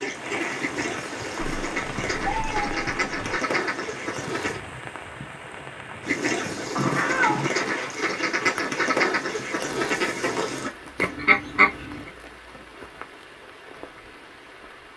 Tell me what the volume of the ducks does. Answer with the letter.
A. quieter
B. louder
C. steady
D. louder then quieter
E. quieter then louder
B.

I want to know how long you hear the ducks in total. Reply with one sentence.
The ducks can be heard for 11 seconds in total.